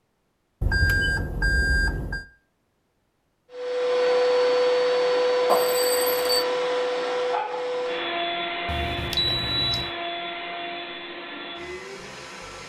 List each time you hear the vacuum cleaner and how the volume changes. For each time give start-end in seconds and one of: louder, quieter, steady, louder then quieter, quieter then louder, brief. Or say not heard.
3.5-12.6 quieter.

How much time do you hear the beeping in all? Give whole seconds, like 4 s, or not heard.
4 s.